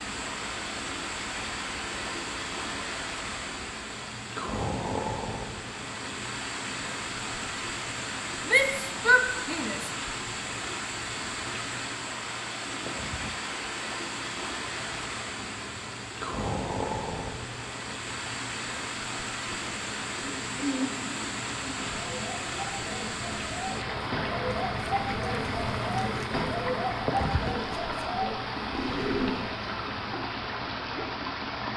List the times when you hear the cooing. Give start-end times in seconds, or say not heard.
20.1-29.6.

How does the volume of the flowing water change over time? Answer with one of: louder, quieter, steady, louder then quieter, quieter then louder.
steady.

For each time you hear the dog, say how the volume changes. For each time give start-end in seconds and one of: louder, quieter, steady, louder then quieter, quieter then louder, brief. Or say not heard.
not heard.